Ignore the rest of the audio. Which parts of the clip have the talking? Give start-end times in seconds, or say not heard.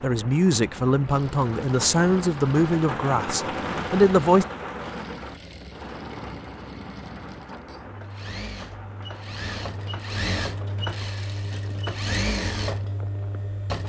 0.0-4.5.